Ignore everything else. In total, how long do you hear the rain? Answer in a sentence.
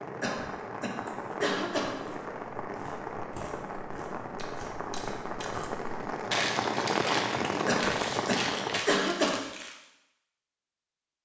The rain can be heard for 9 seconds in total.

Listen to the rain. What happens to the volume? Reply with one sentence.
The loudness of the rain goes up.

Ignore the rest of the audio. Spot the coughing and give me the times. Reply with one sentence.
You can hear the coughing from 0.2 to 2.0 s and from 7.7 to 9.4 s.